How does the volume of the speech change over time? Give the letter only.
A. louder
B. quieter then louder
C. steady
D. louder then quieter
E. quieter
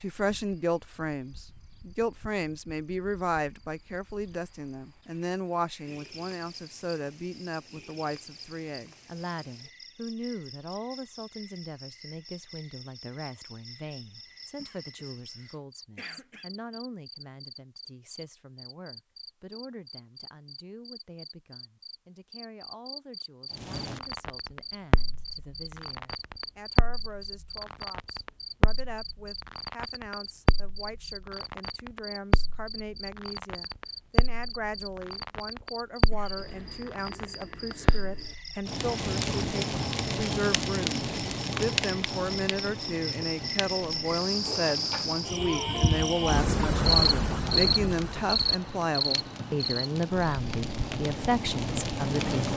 B.